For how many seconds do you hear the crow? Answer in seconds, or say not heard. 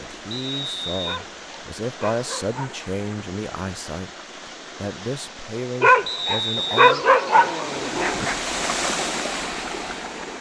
not heard.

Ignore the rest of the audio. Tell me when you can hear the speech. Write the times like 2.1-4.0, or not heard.
0.0-7.0.